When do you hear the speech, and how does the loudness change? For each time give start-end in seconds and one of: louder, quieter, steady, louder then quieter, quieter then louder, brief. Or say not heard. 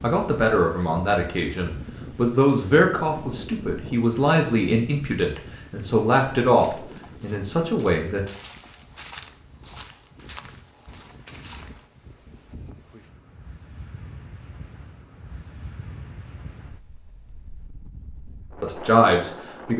0.0-8.2 steady
18.6-19.7 brief.